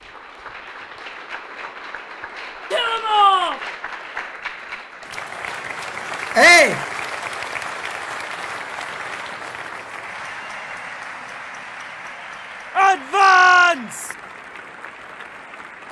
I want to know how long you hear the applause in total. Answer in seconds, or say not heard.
16 s.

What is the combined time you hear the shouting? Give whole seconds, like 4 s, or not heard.
3 s.